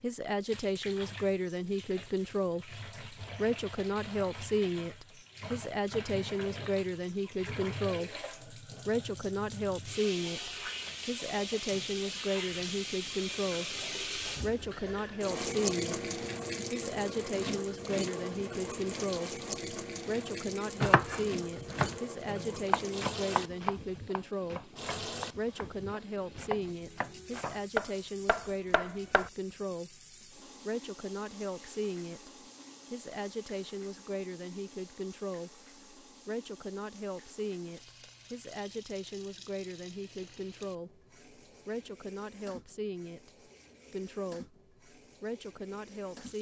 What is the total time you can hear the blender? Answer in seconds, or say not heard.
not heard.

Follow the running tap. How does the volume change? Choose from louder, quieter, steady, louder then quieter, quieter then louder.
louder then quieter.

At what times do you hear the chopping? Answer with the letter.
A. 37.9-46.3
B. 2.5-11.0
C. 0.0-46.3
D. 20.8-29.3
D.